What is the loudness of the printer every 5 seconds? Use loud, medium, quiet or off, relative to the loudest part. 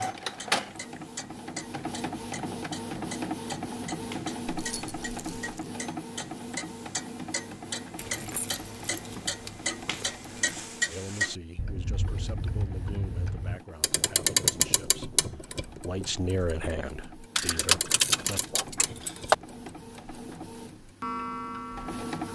loud, medium, quiet, quiet, medium.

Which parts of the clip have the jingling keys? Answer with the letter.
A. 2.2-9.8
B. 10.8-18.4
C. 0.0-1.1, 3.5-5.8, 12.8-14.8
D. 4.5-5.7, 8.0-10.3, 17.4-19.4
D.